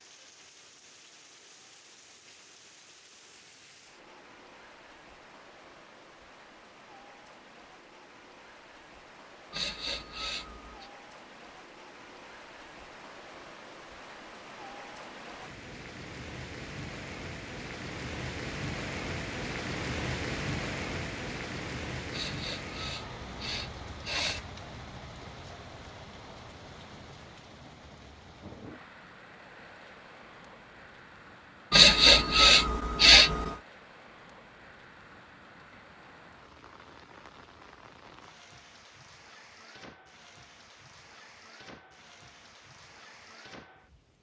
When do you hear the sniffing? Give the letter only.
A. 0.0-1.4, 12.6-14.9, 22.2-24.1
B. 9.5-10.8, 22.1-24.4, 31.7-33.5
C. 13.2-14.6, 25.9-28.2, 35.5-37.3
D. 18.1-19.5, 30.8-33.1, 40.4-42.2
B.